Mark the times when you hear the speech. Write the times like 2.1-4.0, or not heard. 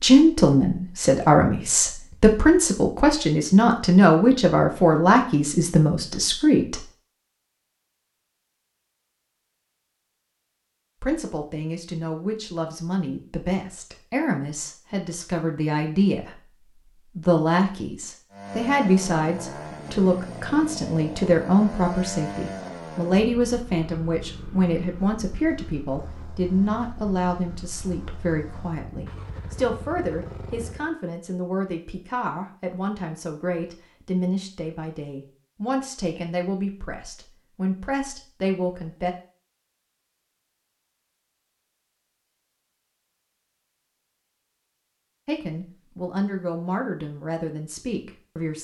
0.0-6.8, 11.0-39.1, 45.2-48.5.